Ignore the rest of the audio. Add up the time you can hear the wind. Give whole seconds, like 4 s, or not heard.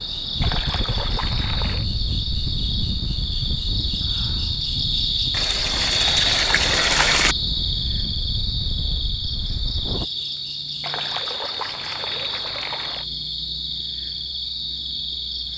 10 s.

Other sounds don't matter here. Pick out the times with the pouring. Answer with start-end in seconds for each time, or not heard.
0.4-1.9, 5.3-7.3, 10.8-13.1.